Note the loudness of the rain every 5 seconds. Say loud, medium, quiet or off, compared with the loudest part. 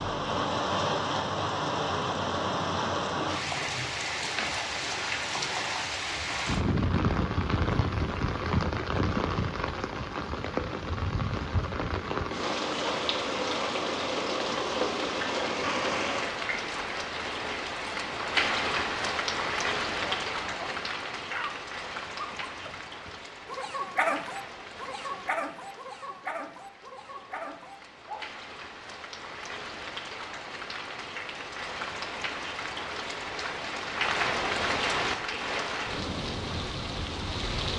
loud, loud, loud, loud, medium, quiet, loud, loud.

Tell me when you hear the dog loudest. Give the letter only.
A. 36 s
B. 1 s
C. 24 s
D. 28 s
C.